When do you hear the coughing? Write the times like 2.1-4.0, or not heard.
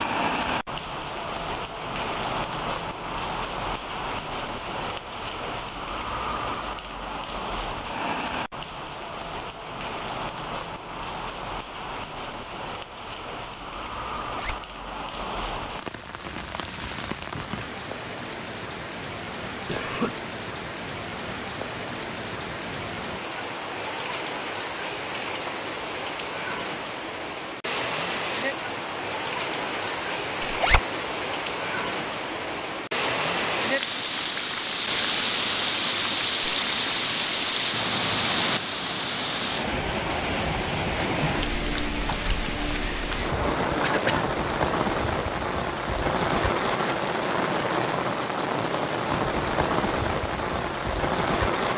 19.6-20.1, 43.8-44.2.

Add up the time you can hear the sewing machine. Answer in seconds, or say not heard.
not heard.